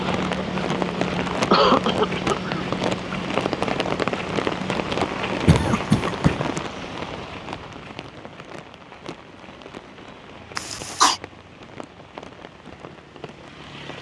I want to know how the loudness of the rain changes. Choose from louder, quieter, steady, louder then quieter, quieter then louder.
quieter.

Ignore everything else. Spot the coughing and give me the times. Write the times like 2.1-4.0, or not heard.
1.3-2.6, 5.5-6.5, 10.6-11.2.